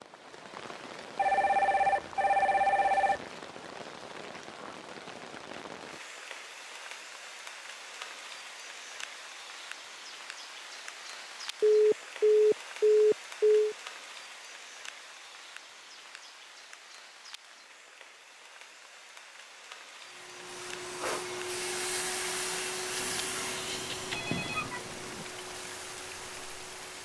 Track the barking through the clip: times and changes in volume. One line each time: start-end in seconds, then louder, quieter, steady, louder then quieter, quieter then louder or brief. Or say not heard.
not heard.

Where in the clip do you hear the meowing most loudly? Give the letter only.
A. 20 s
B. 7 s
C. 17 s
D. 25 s
D.